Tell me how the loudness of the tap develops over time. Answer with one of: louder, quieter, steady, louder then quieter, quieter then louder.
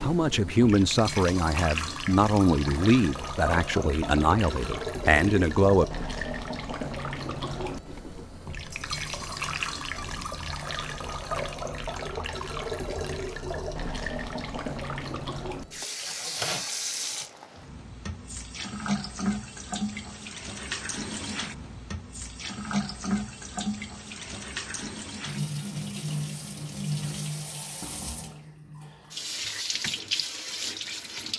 steady.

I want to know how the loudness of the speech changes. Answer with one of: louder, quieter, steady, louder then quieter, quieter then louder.
steady.